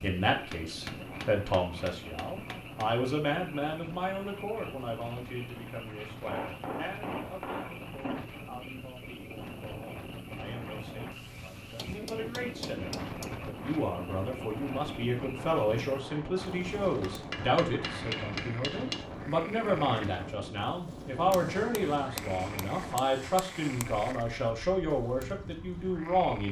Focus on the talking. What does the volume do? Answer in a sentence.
The loudness of the talking goes down, then up.